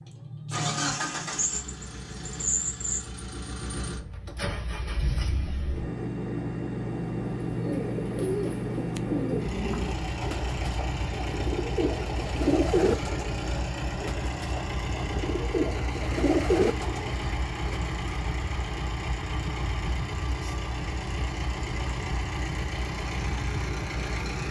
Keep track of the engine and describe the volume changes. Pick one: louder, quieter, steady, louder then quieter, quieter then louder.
steady.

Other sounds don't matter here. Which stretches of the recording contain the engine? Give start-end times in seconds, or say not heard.
0.0-24.4.